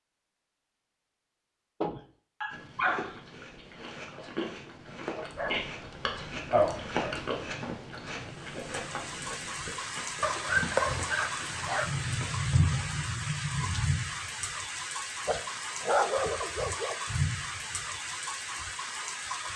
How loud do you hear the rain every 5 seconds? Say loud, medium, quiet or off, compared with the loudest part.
off, medium, loud, loud.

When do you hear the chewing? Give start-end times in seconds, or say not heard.
2.5-12.8.